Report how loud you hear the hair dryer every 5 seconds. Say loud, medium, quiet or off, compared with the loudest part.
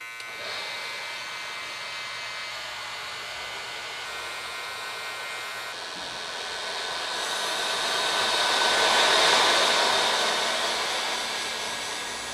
quiet, loud, loud.